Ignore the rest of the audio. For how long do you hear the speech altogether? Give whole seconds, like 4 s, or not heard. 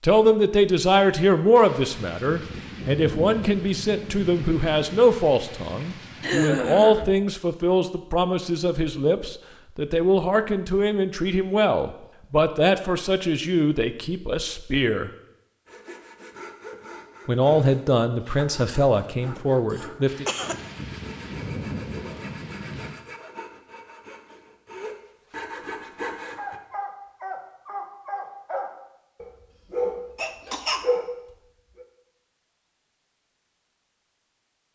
18 s.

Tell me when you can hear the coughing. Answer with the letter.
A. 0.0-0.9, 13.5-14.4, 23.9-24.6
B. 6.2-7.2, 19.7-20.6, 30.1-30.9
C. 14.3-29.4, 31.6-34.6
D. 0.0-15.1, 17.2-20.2
B.